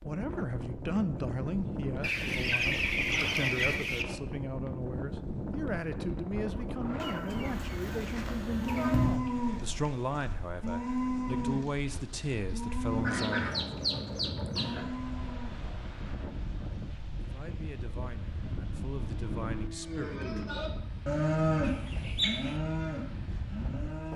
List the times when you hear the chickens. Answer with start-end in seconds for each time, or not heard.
2.0-4.0, 7.0-9.2, 13.0-14.8, 21.6-22.6.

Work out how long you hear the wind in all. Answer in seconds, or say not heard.
24 s.